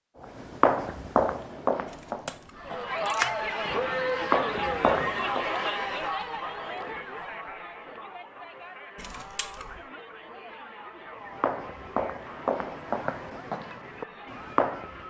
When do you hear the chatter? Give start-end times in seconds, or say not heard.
2.5-15.0.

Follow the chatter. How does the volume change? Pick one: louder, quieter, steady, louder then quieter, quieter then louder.
quieter.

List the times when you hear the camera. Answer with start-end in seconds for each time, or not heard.
1.9-3.5, 8.9-9.8.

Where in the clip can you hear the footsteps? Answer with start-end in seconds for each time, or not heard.
0.2-5.5, 11.3-15.0.